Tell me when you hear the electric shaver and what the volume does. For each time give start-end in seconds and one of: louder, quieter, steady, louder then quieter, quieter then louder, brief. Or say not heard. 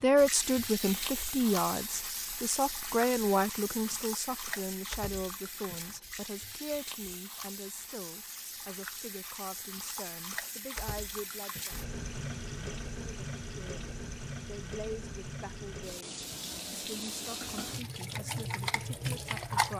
not heard.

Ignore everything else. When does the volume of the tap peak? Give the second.
19 s.